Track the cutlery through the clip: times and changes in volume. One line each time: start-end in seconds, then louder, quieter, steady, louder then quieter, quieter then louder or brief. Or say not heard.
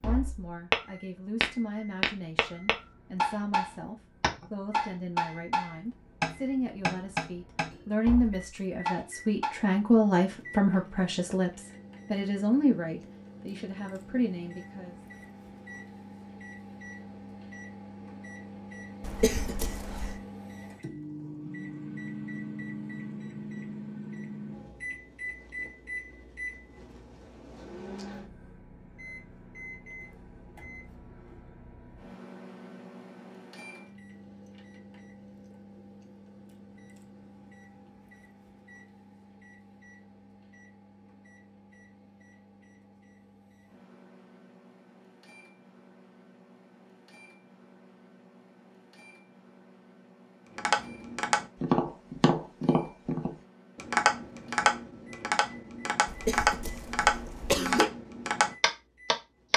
not heard.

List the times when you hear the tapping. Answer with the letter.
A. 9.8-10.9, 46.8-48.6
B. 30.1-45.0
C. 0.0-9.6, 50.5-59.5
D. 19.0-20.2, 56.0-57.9
C.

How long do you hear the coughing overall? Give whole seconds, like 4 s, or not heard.
3 s.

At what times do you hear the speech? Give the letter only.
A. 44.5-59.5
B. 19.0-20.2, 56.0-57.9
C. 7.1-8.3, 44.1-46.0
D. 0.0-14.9
D.